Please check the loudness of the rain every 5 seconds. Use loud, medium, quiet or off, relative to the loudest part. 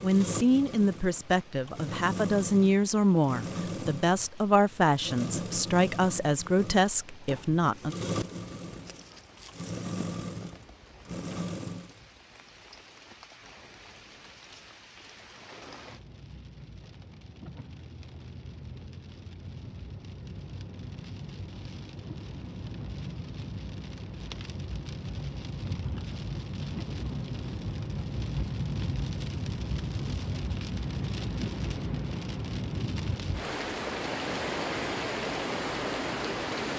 quiet, quiet, quiet, quiet, medium, loud, loud, loud.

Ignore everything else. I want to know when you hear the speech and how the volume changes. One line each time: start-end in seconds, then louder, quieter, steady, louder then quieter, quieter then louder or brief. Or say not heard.
0.0-8.0 steady.